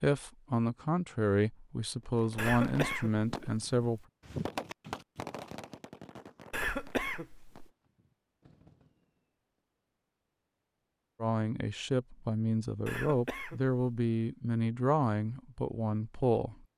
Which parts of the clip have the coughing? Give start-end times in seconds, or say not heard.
2.4-4.0, 6.5-7.7, 12.8-13.8.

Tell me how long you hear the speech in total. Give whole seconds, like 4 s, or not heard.
9 s.